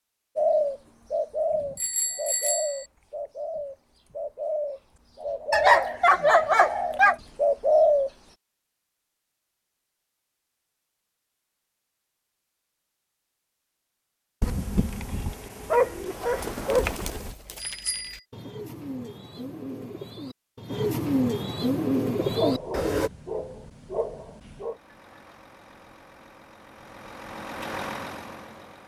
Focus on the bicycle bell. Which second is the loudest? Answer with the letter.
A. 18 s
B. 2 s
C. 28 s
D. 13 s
B.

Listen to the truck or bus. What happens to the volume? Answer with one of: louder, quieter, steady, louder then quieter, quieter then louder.
louder.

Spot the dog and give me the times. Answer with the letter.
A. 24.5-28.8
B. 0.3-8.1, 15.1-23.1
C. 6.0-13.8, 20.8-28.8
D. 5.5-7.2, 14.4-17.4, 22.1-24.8
D.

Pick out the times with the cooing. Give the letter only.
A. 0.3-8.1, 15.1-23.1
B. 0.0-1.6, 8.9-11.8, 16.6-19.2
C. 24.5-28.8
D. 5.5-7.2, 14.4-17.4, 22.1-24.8
A.